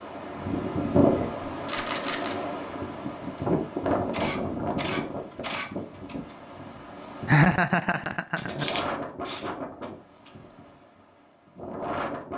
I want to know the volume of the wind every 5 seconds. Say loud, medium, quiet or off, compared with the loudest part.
loud, medium, medium.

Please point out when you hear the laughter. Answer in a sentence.
You can hear the laughter from 7.2 to 8.7 s.